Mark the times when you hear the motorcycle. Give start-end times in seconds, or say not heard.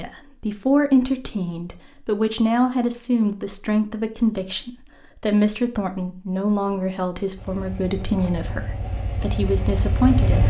7.3-10.4.